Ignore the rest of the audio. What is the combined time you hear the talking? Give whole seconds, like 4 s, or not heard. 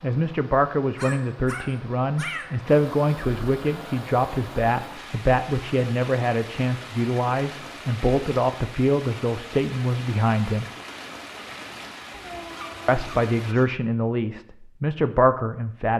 14 s.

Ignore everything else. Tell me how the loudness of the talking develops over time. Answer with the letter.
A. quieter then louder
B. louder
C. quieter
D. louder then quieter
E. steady
E.